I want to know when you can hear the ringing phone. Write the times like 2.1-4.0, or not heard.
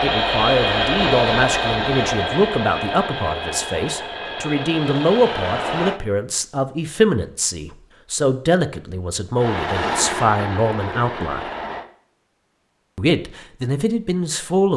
not heard.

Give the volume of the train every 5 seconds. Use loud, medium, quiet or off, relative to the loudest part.
loud, loud, medium.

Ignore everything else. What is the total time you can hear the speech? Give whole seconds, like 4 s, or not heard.
13 s.